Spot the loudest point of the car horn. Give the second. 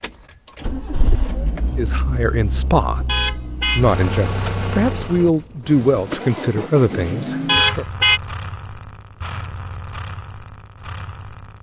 8 s.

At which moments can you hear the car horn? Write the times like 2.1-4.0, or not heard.
3.0-3.9, 7.5-8.2.